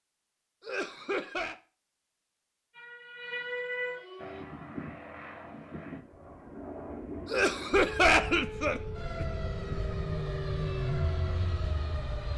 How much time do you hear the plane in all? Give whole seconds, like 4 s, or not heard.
8 s.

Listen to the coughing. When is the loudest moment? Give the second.
8 s.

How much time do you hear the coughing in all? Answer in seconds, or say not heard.
3 s.